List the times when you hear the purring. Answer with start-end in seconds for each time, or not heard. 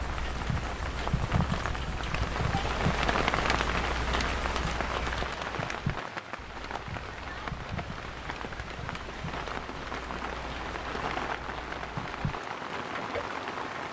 not heard.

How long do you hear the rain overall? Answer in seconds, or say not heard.
14 s.